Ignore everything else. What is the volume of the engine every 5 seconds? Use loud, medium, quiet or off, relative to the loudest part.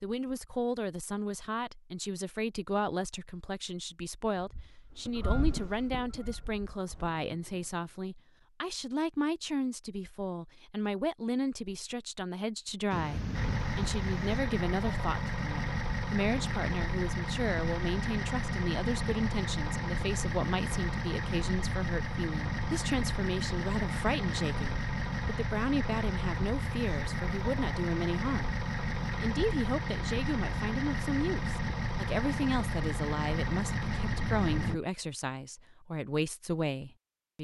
off, off, loud, loud, loud, loud, loud, off.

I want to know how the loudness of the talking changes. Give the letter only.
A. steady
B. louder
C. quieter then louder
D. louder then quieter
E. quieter
A.